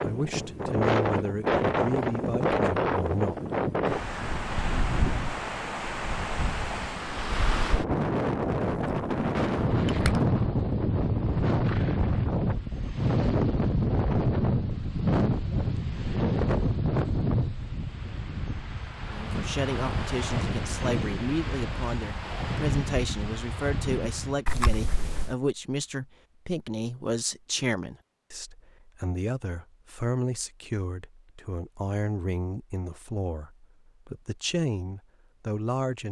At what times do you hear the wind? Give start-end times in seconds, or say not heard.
0.0-24.4.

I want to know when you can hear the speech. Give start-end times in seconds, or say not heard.
0.1-3.4, 19.1-36.0.